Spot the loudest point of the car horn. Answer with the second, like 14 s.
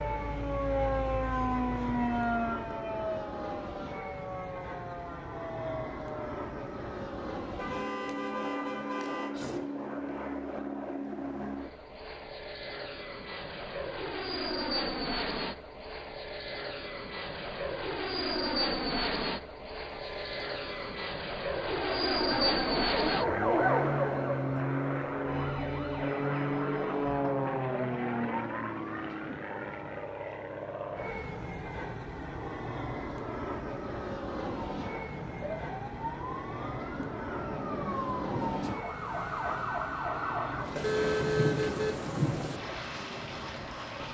41 s.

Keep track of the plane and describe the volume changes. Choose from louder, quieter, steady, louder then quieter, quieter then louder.
louder then quieter.